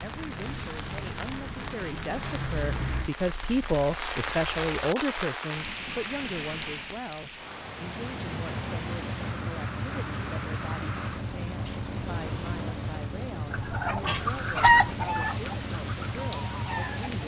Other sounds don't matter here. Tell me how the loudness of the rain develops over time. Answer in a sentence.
The loudness of the rain goes up, then down.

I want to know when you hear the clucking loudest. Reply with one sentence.
The loudest moment of the clucking is at 15 seconds.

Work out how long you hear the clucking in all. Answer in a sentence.
You can hear the clucking for 4 seconds altogether.